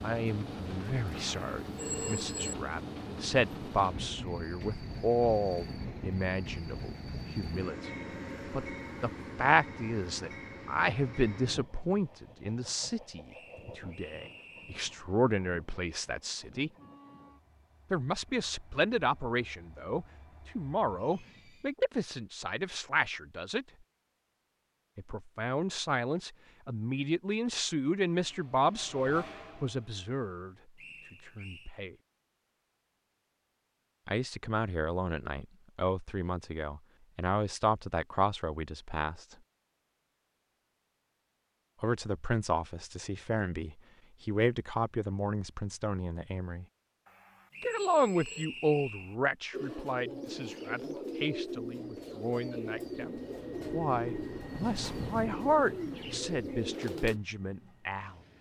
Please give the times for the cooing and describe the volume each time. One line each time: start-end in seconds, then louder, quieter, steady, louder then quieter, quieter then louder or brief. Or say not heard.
49.5-57.2 steady.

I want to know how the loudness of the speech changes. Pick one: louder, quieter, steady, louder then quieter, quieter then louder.
steady.